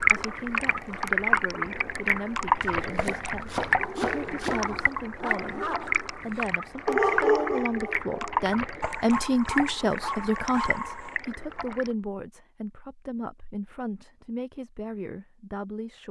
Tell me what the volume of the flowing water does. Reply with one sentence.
The volume of the flowing water goes down.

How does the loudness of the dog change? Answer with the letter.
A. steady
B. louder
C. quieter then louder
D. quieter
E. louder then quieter
E.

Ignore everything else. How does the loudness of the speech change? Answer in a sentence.
The loudness of the speech goes up, then down.